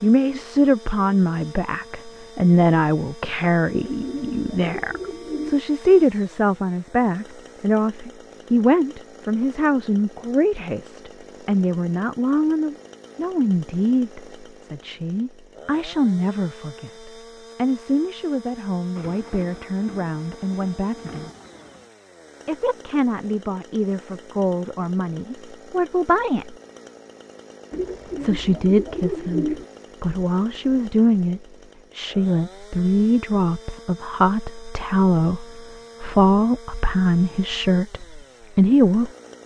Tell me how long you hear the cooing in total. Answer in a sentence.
You can hear the cooing for 4 seconds altogether.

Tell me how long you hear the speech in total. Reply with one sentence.
The speech can be heard for 36 seconds in total.